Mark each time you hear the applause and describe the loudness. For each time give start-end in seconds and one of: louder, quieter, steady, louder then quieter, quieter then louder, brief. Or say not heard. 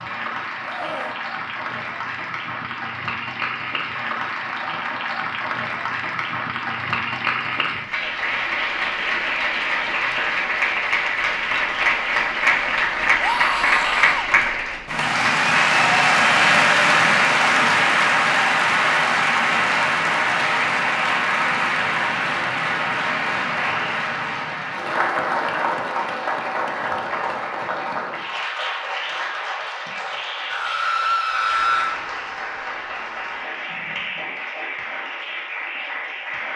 0.0-36.5 louder then quieter.